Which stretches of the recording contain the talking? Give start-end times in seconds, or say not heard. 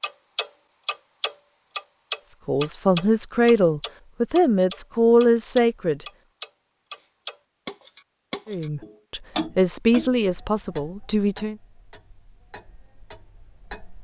2.3-6.0, 8.4-11.6.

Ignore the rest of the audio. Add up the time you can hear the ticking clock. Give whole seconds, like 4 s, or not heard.
14 s.